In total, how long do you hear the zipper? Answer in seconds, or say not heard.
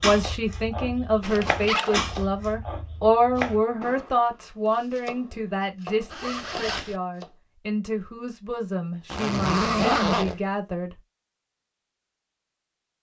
3 s.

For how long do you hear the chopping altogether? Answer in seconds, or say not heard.
7 s.